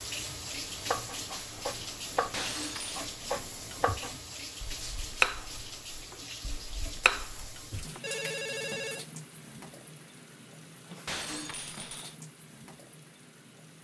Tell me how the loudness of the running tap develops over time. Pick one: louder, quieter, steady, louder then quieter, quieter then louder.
quieter.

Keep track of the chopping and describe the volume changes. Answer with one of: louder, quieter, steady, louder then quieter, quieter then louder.
louder then quieter.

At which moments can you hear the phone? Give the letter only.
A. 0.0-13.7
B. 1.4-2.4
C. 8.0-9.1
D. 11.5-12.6
C.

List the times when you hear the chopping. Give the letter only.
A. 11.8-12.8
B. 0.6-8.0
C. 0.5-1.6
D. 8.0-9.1
B.